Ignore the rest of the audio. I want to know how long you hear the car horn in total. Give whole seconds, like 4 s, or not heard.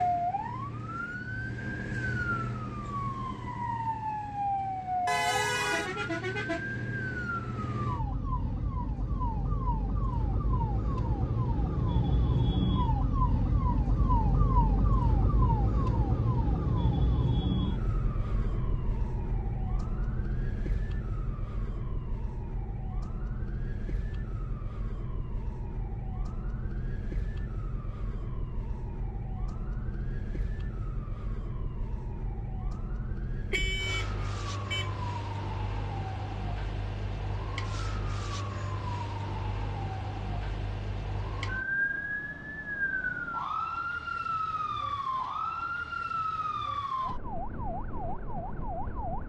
2 s.